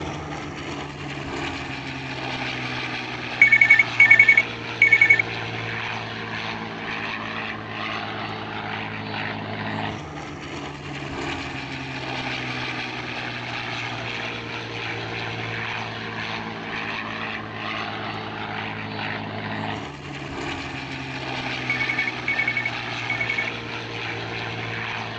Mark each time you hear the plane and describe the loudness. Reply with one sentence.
You can hear the plane from 0.0 to 25.1 s, at a steady volume.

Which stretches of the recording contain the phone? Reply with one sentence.
You can hear the phone from 3.4 to 5.2 s and from 21.7 to 23.5 s.